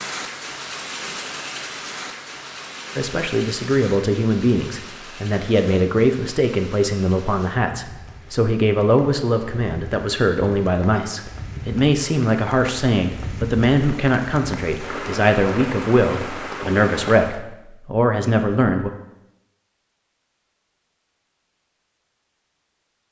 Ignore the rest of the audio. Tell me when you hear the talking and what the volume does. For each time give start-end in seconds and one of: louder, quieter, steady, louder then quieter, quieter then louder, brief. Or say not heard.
3.0-18.9 steady.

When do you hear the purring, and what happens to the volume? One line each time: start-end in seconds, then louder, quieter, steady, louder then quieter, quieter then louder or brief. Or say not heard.
not heard.